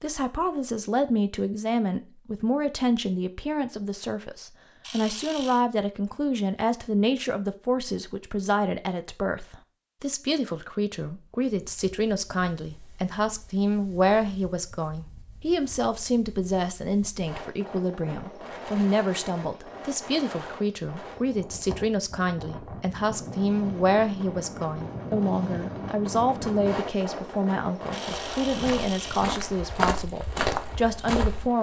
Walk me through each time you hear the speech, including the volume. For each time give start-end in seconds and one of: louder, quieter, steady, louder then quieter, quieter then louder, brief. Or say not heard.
0.0-31.5 steady.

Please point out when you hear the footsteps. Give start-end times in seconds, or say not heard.
28.0-31.5.